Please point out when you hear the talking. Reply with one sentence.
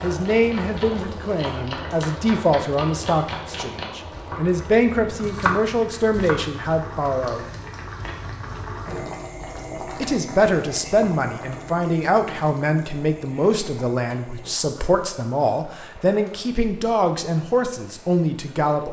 The talking can be heard from 0.0 to 7.5 s and from 9.9 to 18.8 s.